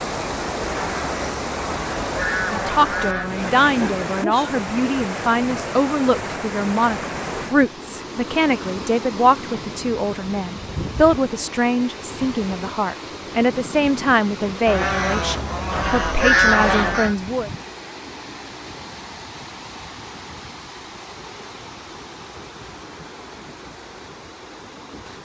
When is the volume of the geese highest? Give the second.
16 s.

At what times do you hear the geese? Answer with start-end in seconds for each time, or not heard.
0.7-3.3, 14.7-17.1.